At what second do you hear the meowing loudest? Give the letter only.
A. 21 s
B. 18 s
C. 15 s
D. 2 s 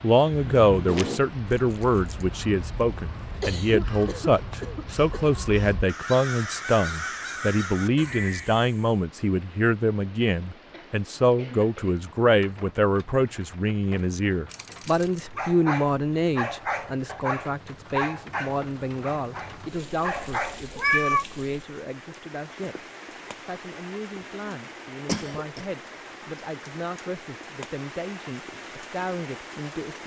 A.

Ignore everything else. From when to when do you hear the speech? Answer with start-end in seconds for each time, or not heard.
0.0-22.8, 23.4-30.0.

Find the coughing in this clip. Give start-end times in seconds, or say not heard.
3.4-5.4, 10.7-12.0, 24.4-25.6.